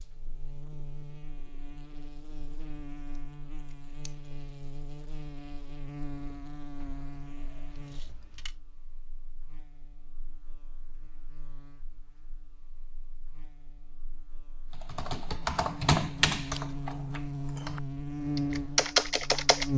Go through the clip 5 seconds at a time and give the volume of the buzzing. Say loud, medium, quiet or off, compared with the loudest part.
quiet, quiet, quiet, loud.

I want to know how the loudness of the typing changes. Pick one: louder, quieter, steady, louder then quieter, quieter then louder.
quieter then louder.